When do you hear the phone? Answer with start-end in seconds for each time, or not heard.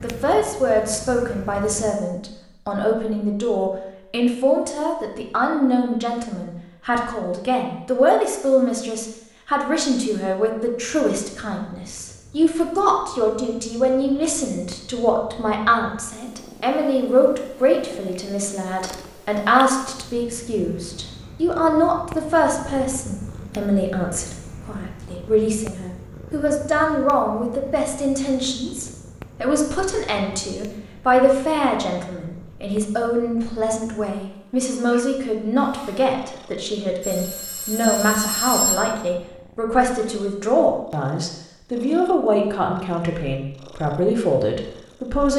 37.0-38.9.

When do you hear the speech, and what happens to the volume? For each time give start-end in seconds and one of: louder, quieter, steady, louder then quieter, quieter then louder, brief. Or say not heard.
0.0-45.3 steady.